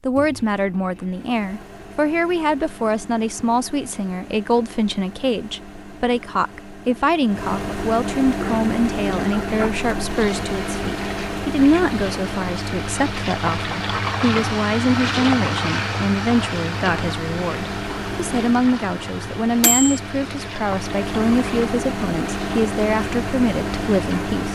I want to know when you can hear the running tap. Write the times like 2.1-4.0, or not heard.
8.2-24.5.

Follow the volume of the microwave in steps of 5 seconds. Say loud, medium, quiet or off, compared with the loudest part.
quiet, loud, loud, loud, loud.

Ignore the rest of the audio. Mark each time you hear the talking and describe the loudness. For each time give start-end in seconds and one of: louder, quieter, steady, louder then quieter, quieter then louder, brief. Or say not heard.
0.0-24.5 steady.